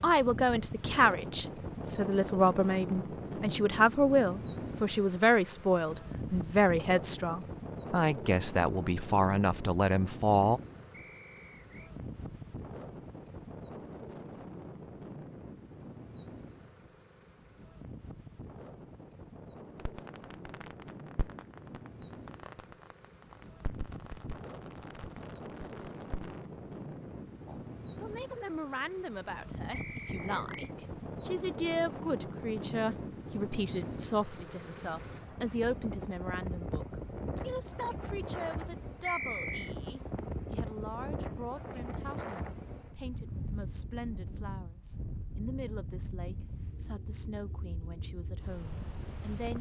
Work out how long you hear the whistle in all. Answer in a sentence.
You can hear the whistle for 3 seconds altogether.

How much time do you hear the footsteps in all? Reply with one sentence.
You can't hear the footsteps here.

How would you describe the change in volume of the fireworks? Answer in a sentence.
The loudness of the fireworks stays about the same.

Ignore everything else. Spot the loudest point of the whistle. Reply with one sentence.
The loudest moment of the whistle is at 39 seconds.